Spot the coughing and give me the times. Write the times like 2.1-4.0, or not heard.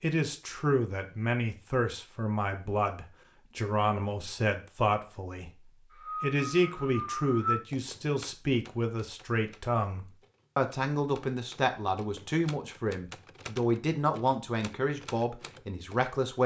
5.9-7.5.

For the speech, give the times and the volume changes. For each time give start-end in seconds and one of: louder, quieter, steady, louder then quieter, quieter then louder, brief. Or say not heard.
0.0-16.4 steady.